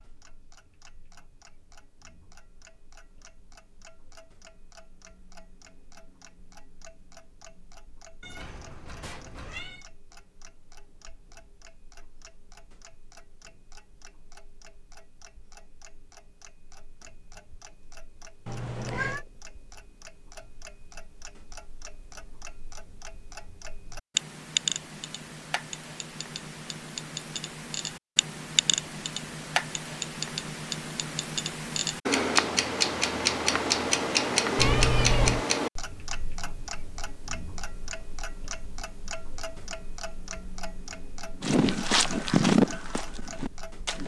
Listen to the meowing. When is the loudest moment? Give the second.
35 s.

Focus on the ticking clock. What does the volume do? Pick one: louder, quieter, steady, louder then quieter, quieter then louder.
louder then quieter.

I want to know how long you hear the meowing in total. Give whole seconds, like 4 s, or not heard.
3 s.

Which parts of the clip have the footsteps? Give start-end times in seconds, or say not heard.
41.4-44.0.